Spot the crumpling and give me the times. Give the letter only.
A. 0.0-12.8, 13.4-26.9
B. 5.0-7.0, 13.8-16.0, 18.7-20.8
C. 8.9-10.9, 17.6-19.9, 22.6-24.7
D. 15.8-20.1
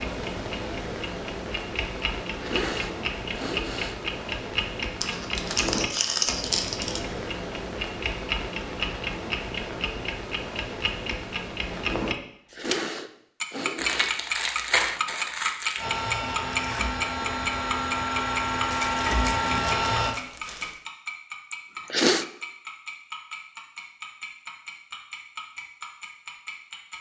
B.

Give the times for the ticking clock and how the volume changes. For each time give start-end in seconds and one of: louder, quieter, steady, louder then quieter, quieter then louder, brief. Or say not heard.
0.0-12.8 steady
13.4-26.9 quieter.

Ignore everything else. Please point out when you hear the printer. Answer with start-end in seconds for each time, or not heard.
15.8-20.1.